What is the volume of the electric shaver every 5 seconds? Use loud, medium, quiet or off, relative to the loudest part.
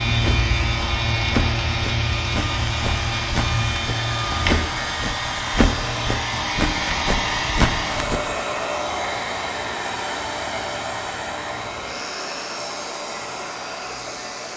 loud, medium, quiet.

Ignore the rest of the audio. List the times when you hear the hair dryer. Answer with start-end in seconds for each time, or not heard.
0.0-14.5.